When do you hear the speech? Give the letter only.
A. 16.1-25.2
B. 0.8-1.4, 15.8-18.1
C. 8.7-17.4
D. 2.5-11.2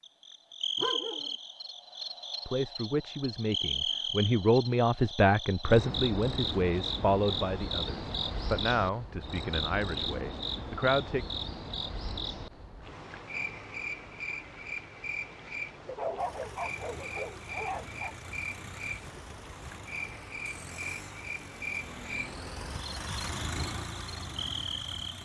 D.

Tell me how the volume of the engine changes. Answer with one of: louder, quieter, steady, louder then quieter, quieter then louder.
louder.